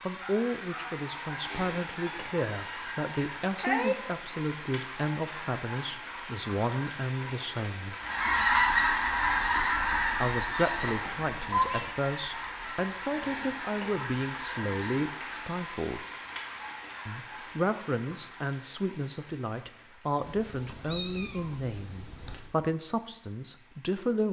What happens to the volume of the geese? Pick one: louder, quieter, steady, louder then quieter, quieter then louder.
quieter.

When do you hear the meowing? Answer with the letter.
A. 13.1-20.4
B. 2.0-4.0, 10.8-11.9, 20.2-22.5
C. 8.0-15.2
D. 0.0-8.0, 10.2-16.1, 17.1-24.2
B.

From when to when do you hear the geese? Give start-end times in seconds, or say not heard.
8.0-15.2.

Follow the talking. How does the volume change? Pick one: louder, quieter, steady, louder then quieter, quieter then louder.
steady.